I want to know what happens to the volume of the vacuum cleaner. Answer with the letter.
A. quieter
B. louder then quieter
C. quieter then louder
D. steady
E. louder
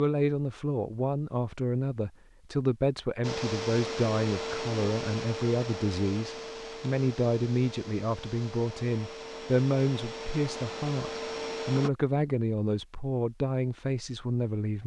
C.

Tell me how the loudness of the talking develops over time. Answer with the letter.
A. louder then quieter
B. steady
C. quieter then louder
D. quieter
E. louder
B.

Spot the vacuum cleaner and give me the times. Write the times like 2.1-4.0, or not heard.
3.2-11.9.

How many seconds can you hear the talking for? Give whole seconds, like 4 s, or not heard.
15 s.